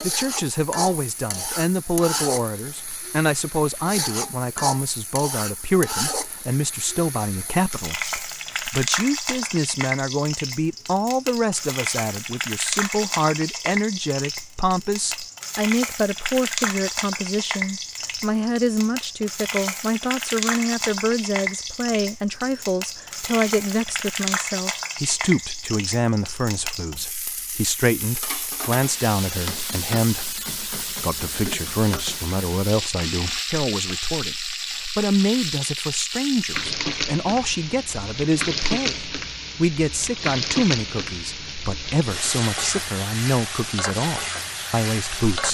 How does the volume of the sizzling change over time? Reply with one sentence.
The loudness of the sizzling stays about the same.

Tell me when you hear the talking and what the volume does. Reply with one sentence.
You can hear the talking from 0.0 to 45.4 s, at a steady volume.